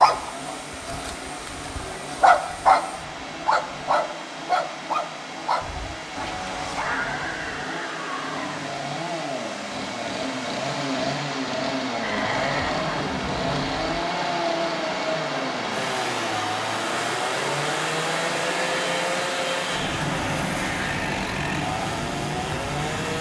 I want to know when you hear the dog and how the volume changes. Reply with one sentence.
The dog can be heard briefly from 0.0 to 2.9 s; and from 3.5 to 7.7 s, getting quieter.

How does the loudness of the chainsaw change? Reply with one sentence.
The loudness of the chainsaw goes up.